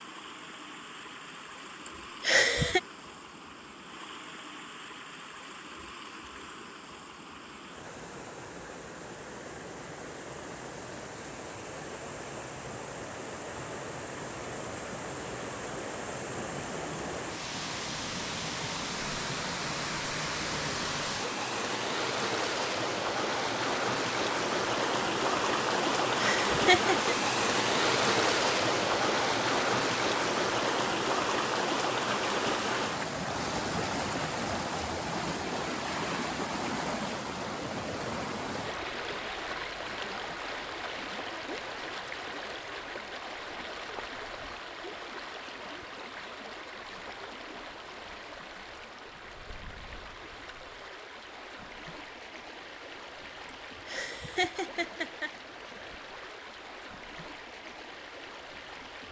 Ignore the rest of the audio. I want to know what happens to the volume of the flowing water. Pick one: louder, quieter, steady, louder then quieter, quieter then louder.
louder then quieter.